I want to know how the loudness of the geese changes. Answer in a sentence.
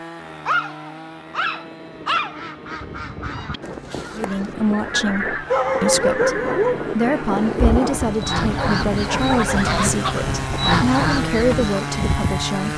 The loudness of the geese goes up.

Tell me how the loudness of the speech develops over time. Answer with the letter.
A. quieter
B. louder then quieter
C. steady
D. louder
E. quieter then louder
C.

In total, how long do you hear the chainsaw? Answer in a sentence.
You can hear the chainsaw for 13 seconds altogether.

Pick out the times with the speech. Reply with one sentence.
The speech can be heard from 4.2 to 12.7 s.